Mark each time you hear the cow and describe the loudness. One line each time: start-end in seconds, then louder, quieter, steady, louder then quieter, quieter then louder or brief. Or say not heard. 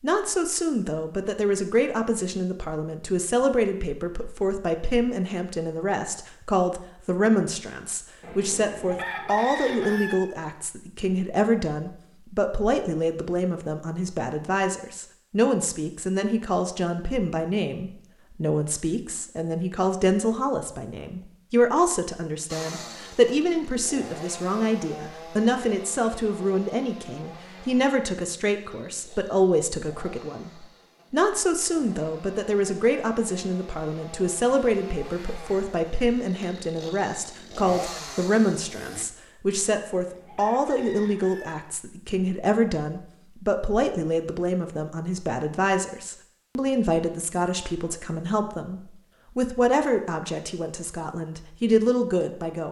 not heard.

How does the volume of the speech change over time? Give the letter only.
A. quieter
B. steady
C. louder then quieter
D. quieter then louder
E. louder
B.